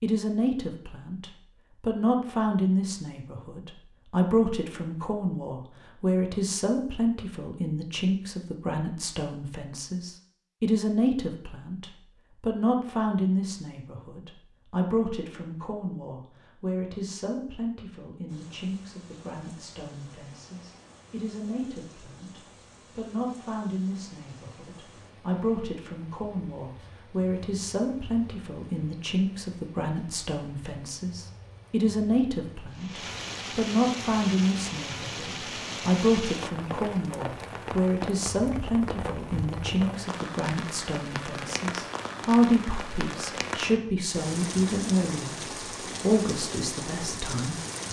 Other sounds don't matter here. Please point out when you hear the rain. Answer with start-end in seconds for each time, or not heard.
18.2-47.8.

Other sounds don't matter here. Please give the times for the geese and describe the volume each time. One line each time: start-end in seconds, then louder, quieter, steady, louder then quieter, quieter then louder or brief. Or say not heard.
not heard.